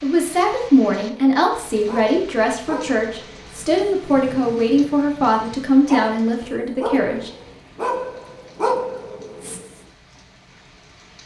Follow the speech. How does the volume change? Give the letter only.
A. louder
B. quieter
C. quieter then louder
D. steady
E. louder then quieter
D.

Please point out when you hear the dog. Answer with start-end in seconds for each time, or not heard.
0.9-9.8.